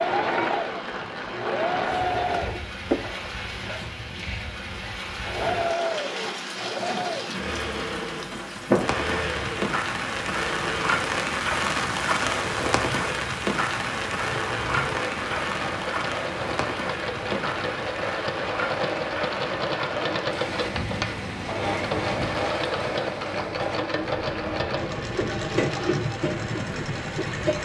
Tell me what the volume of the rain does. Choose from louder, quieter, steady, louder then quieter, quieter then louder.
louder then quieter.